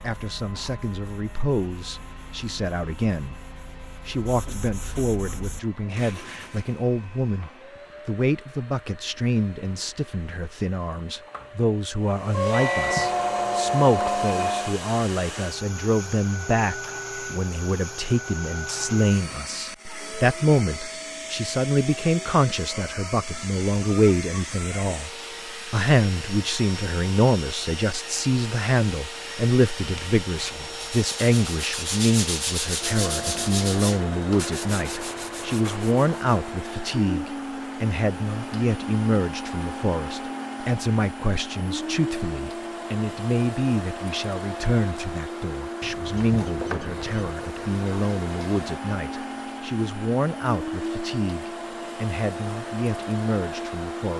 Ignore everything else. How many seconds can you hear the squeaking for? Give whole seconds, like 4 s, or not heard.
5 s.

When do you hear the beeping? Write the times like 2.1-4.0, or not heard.
12.5-13.2.